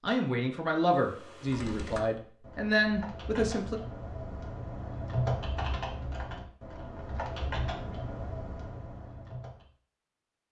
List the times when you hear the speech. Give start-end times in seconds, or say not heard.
0.0-3.8.